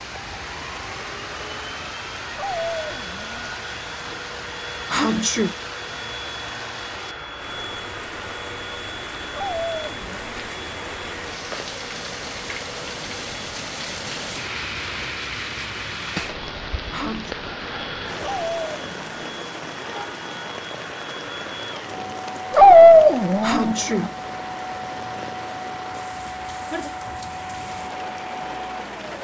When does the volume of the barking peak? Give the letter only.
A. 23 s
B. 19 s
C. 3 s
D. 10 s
A.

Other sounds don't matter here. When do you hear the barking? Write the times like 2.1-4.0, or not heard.
2.4-3.5, 9.3-10.4, 18.2-19.4, 22.5-23.8.